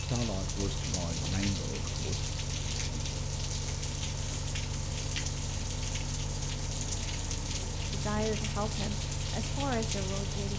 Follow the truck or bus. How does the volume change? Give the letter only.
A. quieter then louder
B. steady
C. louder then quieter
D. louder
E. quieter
B.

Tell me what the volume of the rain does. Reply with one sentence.
The loudness of the rain stays about the same.